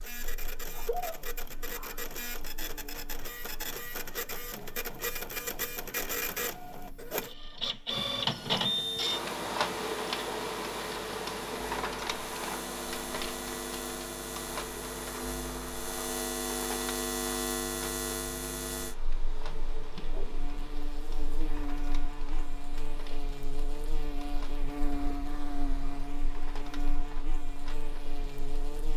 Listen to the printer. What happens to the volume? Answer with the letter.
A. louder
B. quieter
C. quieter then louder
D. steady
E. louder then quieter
E.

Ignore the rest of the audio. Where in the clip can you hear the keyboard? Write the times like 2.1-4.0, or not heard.
not heard.